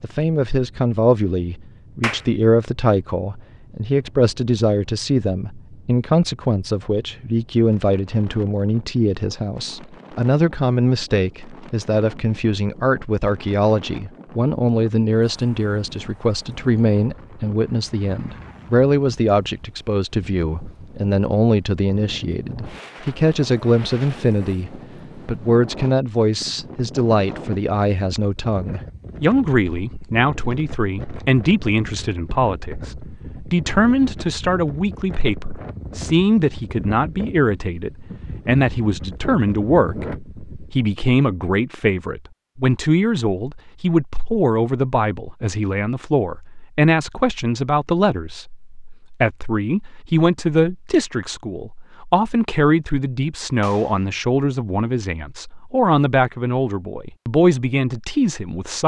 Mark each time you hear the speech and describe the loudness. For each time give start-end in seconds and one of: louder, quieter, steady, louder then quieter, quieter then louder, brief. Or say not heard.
0.0-58.8 steady.